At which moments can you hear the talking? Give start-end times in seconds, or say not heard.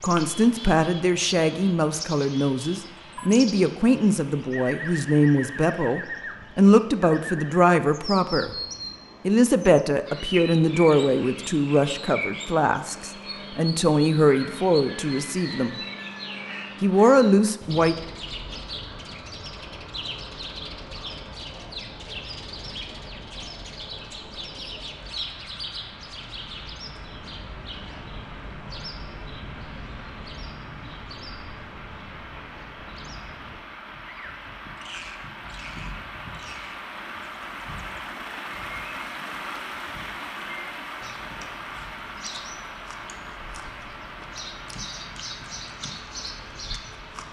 0.0-8.5, 9.2-15.8, 16.8-17.9.